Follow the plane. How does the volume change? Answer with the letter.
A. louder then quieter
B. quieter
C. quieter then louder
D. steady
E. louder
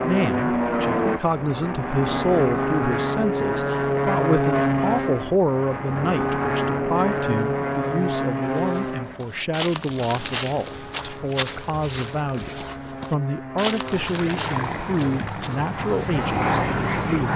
C.